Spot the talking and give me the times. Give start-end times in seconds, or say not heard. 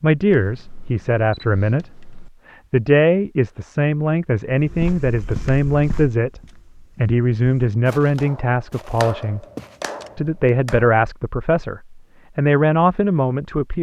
0.0-1.9, 2.7-9.4, 10.2-13.7.